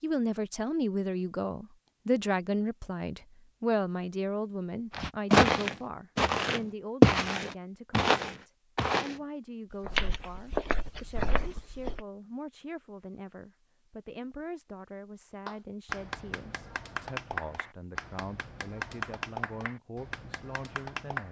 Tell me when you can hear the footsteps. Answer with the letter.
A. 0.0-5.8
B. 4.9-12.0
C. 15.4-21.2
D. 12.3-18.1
B.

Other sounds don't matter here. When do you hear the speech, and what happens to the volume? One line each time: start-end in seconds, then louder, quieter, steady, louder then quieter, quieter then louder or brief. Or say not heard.
0.0-21.2 quieter.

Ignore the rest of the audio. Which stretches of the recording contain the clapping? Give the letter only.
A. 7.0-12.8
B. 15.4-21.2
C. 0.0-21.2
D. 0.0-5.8
B.